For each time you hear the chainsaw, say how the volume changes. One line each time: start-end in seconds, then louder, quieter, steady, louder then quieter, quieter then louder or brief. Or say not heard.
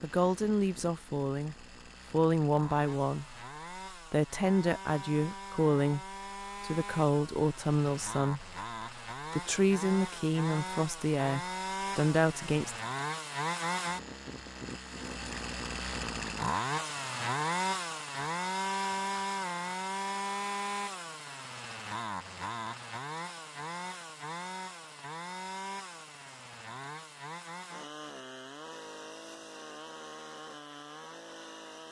0.0-31.8 louder then quieter.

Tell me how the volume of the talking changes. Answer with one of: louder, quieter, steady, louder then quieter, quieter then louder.
steady.